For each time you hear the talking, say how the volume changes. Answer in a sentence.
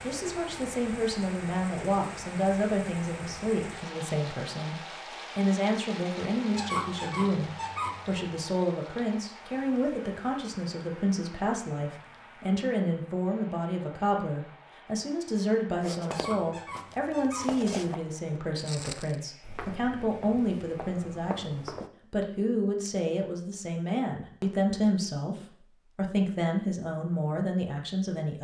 You can hear the talking from 0.0 to 28.3 s, at a steady volume.